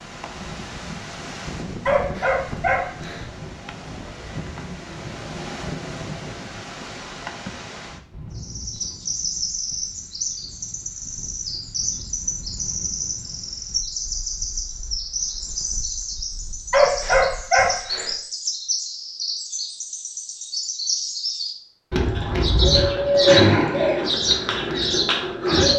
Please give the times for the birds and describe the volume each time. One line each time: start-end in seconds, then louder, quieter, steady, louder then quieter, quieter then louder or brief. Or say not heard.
8.3-25.7 louder.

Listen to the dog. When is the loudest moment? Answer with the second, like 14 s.
17 s.